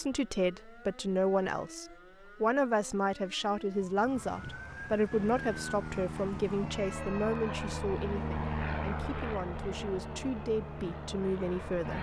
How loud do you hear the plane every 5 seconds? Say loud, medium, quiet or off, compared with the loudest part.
off, loud, loud.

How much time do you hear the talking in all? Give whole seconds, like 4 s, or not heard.
12 s.